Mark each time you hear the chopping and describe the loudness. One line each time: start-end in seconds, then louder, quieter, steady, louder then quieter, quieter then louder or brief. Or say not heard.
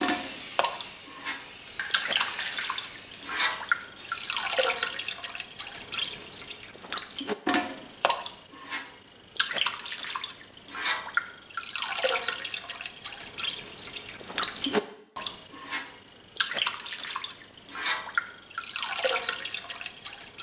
not heard.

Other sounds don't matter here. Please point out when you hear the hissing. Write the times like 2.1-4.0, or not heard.
0.0-4.5.